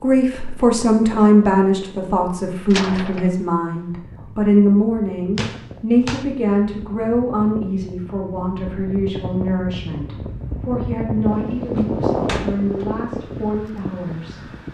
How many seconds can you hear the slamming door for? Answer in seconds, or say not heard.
3 s.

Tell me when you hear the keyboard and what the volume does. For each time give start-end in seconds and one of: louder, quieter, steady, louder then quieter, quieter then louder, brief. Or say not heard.
not heard.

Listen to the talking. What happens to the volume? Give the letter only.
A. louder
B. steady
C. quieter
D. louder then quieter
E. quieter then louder
C.